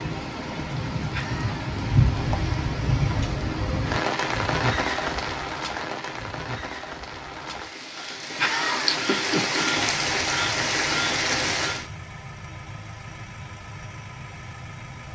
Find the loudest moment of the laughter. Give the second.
9 s.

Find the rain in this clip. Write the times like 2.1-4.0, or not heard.
0.0-11.8.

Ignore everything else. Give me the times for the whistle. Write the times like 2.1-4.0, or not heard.
not heard.